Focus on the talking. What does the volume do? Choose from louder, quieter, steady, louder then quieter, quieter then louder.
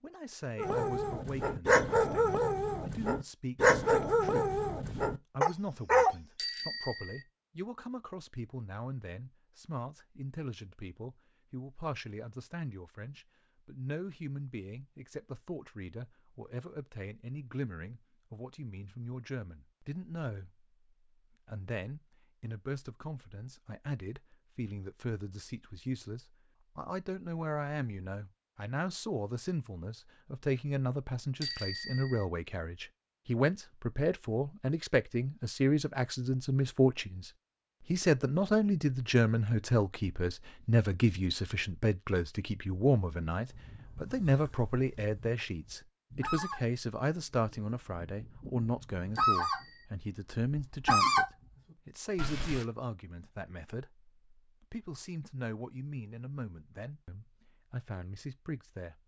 louder then quieter.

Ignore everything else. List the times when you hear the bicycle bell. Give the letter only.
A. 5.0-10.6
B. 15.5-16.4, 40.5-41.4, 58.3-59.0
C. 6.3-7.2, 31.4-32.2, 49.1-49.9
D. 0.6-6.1
C.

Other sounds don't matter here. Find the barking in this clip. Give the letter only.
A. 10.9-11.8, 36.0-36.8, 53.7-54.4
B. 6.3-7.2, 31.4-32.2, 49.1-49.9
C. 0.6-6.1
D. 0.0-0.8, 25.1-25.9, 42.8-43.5
C.